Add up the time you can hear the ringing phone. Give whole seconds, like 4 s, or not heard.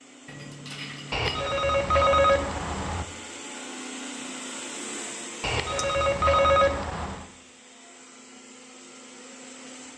4 s.